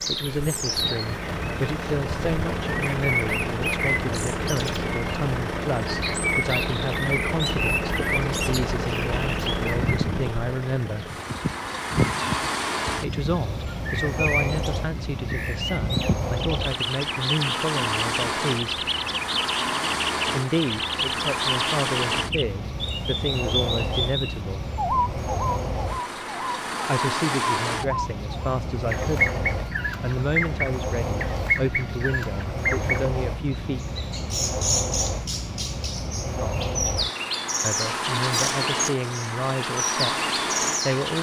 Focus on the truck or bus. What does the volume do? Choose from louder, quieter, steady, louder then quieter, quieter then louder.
steady.